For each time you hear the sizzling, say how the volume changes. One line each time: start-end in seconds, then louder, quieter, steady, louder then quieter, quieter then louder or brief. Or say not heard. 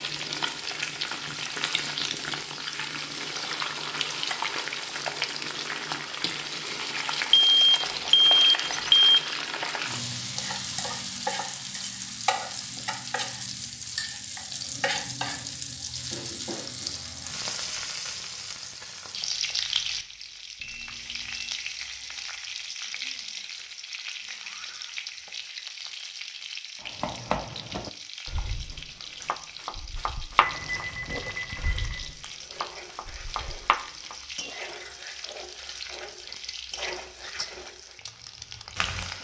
0.0-39.2 quieter.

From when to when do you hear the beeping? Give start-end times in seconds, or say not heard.
7.3-9.2, 20.6-21.6, 30.4-32.0.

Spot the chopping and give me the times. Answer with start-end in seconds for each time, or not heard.
26.8-34.5.